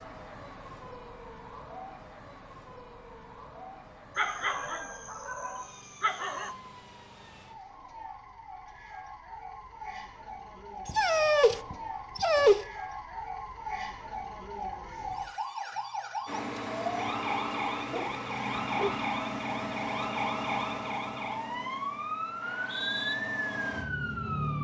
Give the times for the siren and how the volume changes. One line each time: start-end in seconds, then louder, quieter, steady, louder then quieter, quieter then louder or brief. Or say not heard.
0.0-24.5 louder.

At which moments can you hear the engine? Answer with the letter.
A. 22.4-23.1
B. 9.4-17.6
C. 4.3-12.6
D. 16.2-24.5
D.